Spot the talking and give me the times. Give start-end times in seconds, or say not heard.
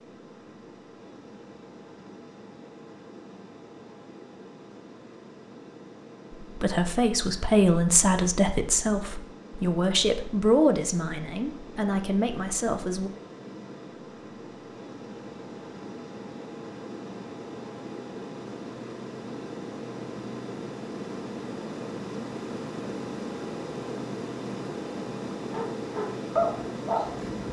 6.4-13.1.